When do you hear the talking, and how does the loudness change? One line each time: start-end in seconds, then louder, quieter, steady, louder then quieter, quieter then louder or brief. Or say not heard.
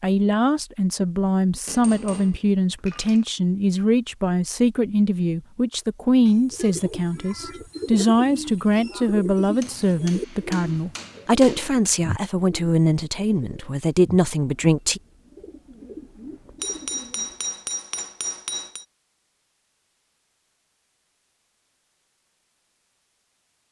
0.0-15.0 steady.